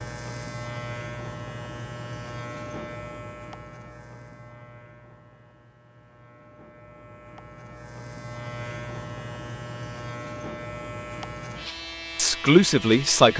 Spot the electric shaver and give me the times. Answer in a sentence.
The electric shaver can be heard from 0.0 to 13.3 s.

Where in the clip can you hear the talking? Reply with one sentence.
The talking can be heard from 12.2 to 13.3 s.